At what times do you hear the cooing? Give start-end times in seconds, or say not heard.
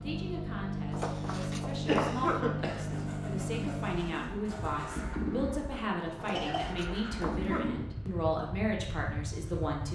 2.6-5.2.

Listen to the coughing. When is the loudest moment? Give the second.
2 s.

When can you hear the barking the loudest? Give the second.
2 s.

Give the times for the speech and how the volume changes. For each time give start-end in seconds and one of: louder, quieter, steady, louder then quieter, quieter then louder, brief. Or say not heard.
0.0-9.9 louder.